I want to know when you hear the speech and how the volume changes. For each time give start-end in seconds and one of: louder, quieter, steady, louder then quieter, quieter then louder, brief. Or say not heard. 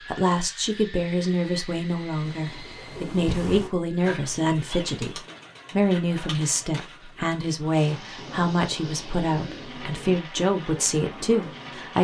0.1-11.9 steady.